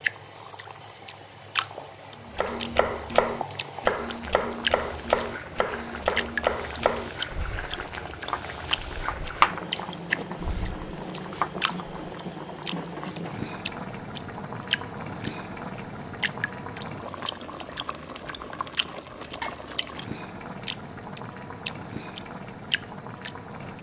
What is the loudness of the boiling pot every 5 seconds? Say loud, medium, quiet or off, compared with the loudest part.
medium, loud, loud, loud, loud.